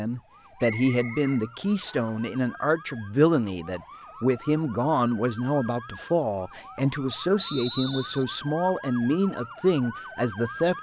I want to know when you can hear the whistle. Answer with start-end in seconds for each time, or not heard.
0.7-2.1, 7.3-8.2.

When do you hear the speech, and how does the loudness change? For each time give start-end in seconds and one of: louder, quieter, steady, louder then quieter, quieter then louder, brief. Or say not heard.
0.0-10.7 steady.